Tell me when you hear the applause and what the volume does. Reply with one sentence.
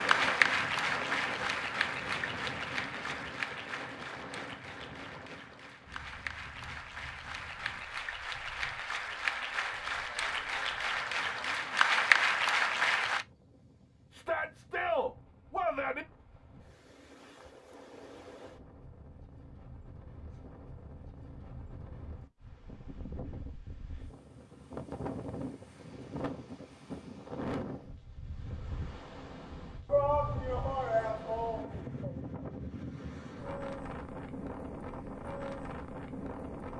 The applause can be heard from 0.0 to 13.2 s, getting quieter then louder.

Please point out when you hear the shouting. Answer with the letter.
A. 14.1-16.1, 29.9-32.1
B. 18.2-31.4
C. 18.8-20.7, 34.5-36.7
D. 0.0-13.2
A.